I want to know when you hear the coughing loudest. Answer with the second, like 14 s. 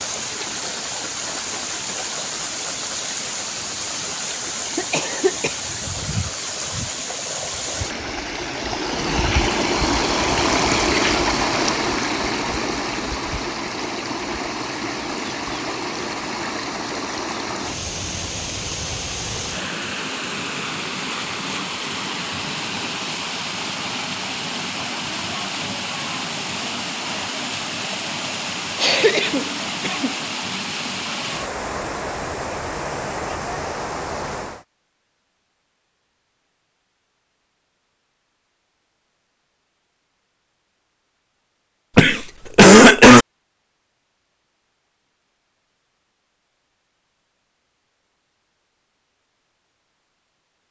43 s.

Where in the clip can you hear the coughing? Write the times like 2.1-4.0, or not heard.
4.8-5.5, 28.8-30.1, 42.0-43.2.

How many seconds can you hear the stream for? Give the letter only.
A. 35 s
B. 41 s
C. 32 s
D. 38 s
A.